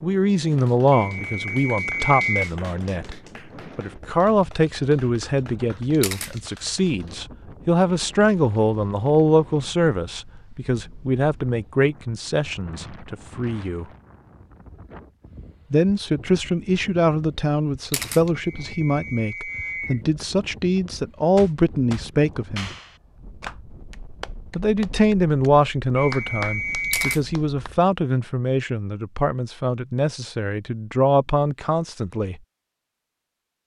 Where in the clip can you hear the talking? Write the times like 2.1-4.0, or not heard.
0.0-13.8, 15.7-22.7, 24.6-32.4.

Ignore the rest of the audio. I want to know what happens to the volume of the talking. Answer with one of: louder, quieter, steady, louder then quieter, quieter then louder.
steady.